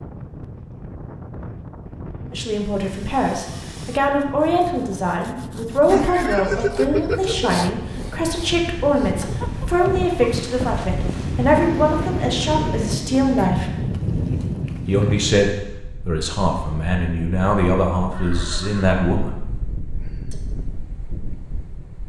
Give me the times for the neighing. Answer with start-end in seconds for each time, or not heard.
5.8-7.6, 18.0-18.9.